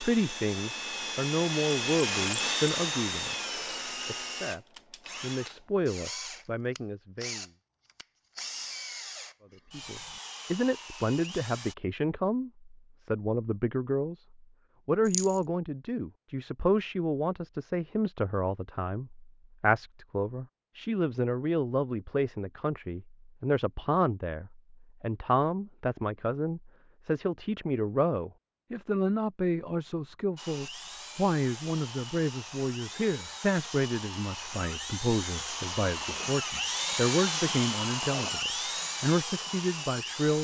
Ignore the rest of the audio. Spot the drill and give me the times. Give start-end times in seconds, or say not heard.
0.0-11.8, 30.4-40.4.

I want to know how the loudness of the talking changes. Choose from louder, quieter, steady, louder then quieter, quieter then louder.
steady.